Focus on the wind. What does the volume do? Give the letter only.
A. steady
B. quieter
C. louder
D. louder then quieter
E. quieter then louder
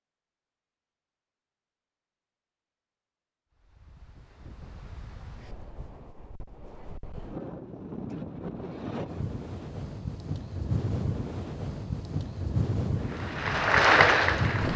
C.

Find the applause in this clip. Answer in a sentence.
You can hear the applause from 12.9 to 14.7 s.